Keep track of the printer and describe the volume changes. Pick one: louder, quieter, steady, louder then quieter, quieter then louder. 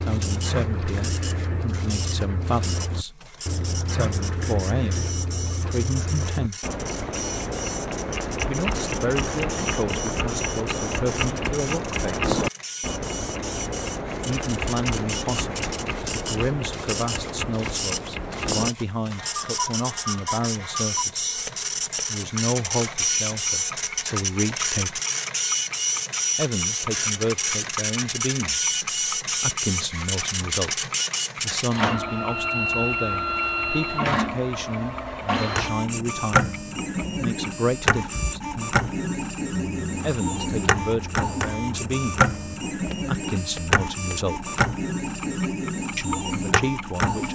louder.